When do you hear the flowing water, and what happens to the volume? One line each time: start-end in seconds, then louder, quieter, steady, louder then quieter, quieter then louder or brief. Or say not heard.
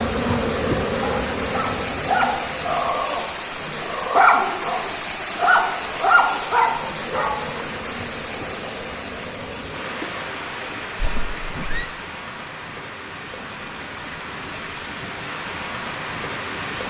0.0-16.8 steady.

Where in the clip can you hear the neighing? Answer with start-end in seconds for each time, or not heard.
11.0-11.9.